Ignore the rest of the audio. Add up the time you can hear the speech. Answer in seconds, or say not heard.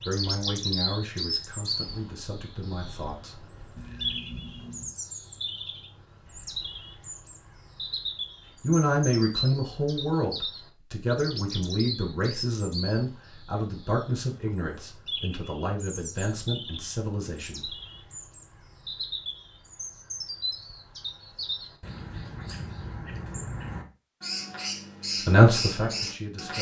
14 s.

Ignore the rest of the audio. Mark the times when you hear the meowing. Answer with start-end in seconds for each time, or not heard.
3.8-5.0.